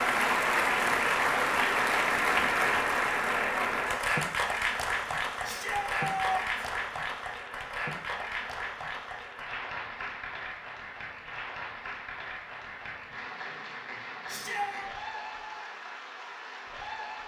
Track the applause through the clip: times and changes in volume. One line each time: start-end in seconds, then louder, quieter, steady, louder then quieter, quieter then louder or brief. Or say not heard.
0.0-17.2 quieter.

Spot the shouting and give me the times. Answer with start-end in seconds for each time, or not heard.
5.4-6.7, 14.2-14.9.